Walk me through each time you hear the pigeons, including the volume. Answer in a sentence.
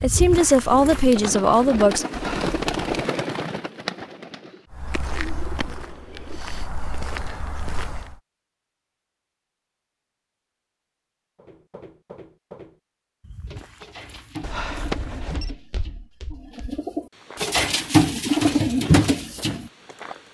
The pigeons can be heard from 0.1 to 6.4 s, getting louder then quieter; and from 13.4 to 19.7 s, getting louder.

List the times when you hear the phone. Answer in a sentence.
The phone can be heard from 2.1 to 2.9 s and from 14.4 to 15.5 s.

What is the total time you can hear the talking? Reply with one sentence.
The talking can be heard for 2 seconds in total.